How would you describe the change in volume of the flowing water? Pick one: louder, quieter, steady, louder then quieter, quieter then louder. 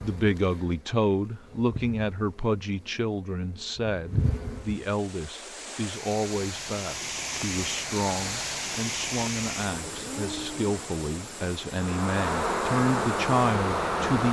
louder then quieter.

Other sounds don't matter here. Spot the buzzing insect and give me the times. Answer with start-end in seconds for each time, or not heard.
0.0-4.8, 11.8-14.2.